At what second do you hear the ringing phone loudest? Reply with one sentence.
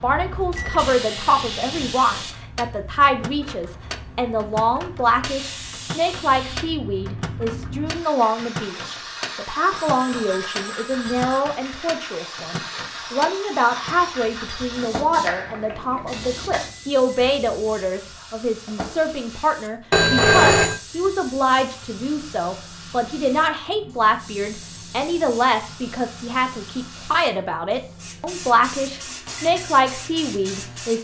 The loudest moment of the ringing phone is at 20 seconds.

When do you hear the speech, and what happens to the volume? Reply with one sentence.
You can hear the speech from 0.0 to 30.9 s, at a steady volume.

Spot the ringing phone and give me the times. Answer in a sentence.
You can hear the ringing phone from 9.7 to 11.3 s and from 19.9 to 20.8 s.